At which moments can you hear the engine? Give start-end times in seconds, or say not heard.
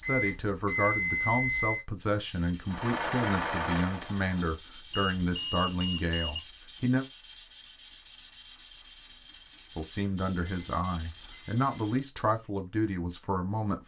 2.6-4.6.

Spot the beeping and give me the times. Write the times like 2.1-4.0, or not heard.
0.0-1.9, 4.9-6.4, 10.3-11.9.